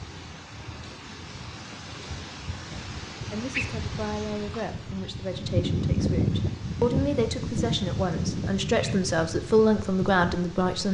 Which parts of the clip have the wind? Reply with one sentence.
The wind can be heard from 0.0 to 10.8 s.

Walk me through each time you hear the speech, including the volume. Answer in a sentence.
You can hear the speech from 2.7 to 10.8 s, getting louder.